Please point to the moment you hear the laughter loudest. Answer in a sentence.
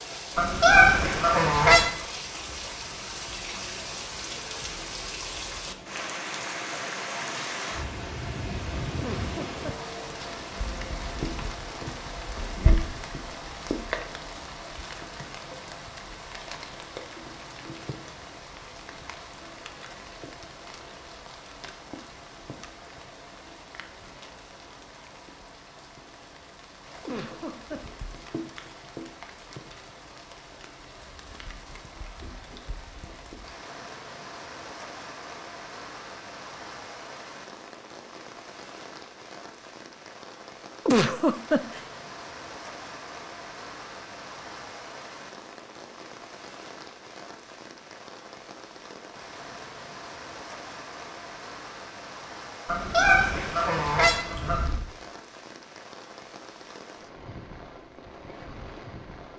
The volume of the laughter peaks at 41 seconds.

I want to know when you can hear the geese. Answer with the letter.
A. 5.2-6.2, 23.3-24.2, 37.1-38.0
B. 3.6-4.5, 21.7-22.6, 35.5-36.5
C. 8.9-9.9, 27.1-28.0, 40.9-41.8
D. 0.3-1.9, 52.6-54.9
D.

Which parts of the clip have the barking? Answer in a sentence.
You can't hear the barking here.